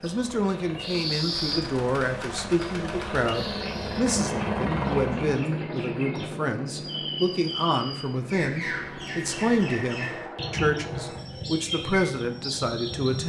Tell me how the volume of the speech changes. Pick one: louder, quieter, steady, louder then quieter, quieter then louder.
steady.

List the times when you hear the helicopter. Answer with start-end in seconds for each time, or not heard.
0.0-13.2.